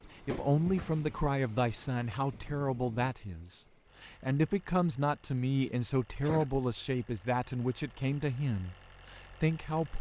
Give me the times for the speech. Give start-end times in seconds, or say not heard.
0.1-9.9.